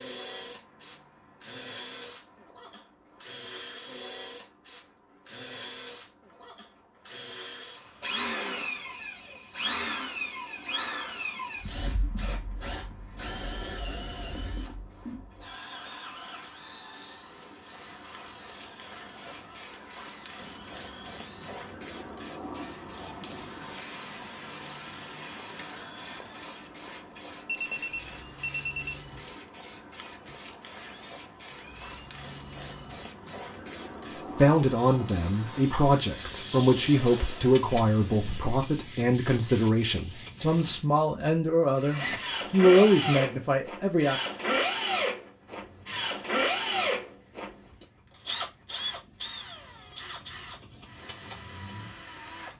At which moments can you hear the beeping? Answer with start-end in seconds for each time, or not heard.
27.4-28.9.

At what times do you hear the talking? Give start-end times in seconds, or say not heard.
34.1-44.2.